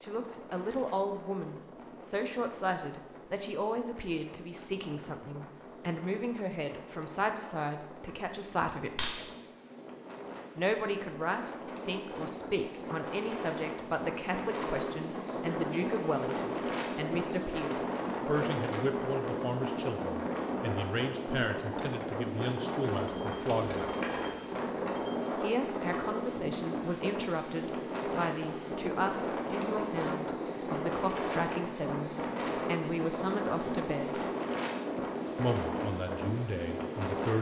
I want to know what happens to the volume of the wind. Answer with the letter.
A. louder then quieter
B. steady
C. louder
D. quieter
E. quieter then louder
C.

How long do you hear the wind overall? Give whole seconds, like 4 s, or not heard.
37 s.